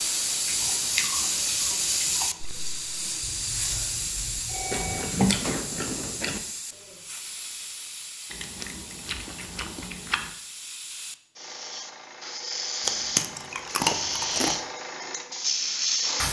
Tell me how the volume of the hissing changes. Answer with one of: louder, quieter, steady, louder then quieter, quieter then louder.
quieter then louder.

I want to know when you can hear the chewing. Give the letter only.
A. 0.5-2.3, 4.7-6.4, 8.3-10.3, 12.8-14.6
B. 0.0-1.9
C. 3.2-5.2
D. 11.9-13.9
A.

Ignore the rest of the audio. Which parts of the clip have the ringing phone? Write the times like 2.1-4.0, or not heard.
3.2-5.2.